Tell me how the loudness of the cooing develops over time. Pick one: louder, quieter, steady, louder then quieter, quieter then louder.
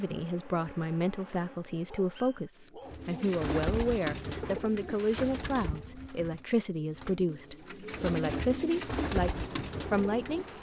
quieter then louder.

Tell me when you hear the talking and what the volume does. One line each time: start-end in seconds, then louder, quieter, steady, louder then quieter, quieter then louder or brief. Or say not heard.
0.0-10.4 steady.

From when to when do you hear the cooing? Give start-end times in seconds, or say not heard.
2.9-10.5.